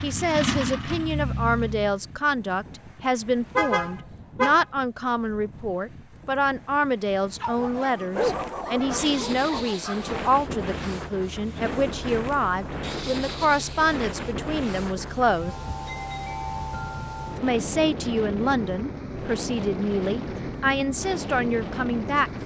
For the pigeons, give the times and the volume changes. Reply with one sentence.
The pigeons can't be heard in this clip.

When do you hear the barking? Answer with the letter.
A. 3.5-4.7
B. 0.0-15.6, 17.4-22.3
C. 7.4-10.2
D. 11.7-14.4
C.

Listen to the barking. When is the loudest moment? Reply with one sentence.
The volume of the barking peaks at 8 seconds.